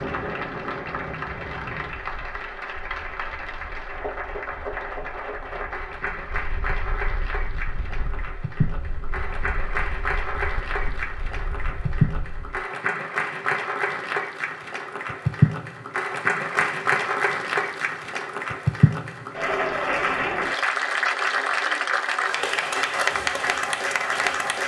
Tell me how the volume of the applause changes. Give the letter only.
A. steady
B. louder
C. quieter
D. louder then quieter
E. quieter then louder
B.